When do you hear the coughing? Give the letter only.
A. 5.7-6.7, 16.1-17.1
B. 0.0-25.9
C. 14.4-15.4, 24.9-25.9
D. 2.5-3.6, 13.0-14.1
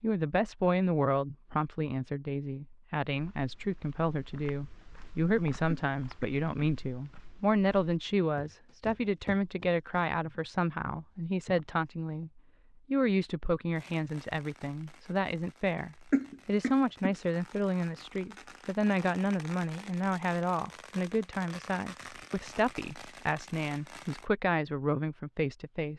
A.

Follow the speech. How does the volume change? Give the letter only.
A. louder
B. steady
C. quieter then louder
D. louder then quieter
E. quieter
B.